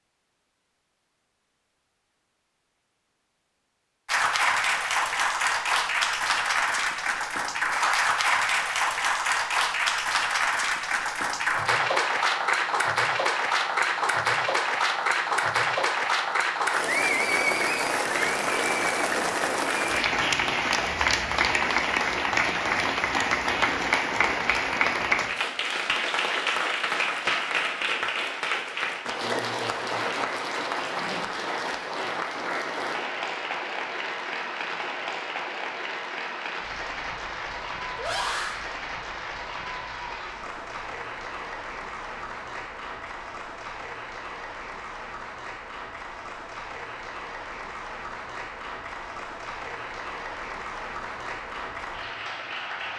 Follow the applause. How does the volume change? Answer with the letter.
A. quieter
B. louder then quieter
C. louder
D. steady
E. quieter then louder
A.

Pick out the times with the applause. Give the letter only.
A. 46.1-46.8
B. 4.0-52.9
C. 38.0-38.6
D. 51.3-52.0
B.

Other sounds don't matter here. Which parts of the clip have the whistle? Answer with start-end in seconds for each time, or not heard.
not heard.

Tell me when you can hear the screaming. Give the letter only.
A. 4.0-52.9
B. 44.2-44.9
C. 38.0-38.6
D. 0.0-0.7
C.